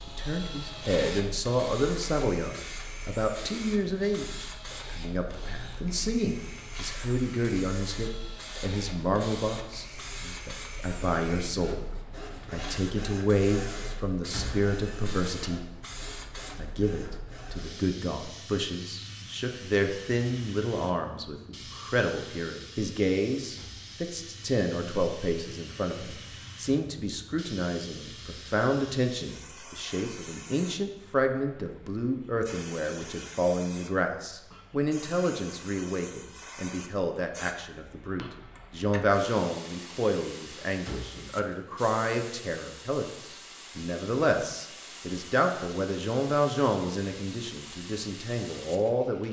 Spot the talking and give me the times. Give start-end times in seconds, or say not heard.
0.1-15.7, 16.6-49.2.